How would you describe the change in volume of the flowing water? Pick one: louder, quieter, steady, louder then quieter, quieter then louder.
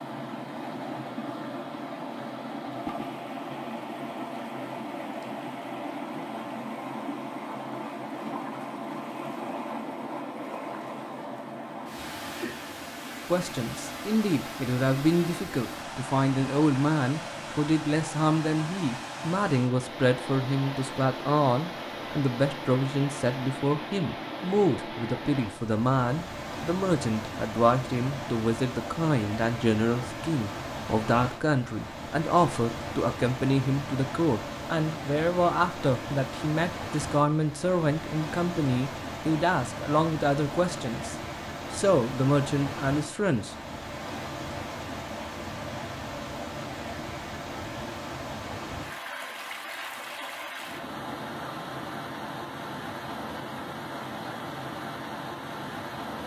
steady.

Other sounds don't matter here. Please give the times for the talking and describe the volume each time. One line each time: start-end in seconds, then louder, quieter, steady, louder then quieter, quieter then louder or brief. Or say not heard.
13.3-43.5 steady.